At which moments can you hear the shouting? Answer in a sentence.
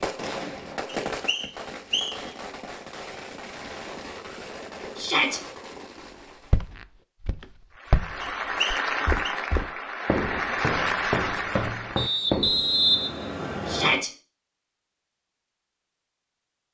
The shouting can be heard from 5.0 to 5.4 s and from 13.7 to 14.1 s.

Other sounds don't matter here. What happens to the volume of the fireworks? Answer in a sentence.
The volume of the fireworks goes down.